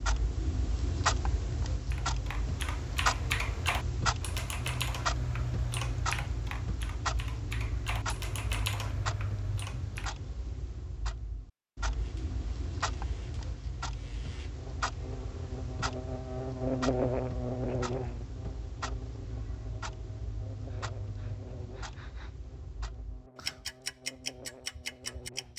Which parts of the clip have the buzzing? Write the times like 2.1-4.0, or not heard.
11.9-25.5.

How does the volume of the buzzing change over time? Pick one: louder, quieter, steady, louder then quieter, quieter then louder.
louder then quieter.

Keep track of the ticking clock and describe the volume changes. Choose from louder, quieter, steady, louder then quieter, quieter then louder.
quieter.